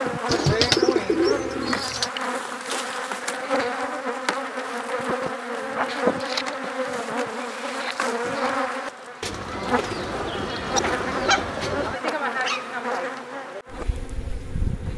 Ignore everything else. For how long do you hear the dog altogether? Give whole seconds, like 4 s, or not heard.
2 s.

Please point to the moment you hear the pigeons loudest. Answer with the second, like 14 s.
1 s.